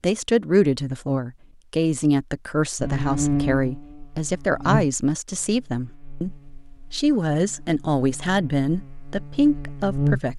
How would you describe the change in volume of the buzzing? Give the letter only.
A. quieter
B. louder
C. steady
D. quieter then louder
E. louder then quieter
D.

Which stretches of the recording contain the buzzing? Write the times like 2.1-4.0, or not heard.
2.8-10.3.